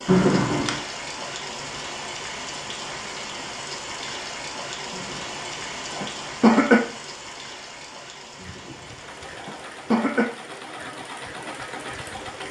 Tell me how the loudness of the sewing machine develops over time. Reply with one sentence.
The volume of the sewing machine goes up.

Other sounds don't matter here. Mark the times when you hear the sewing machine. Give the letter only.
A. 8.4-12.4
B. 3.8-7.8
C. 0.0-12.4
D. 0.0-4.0
A.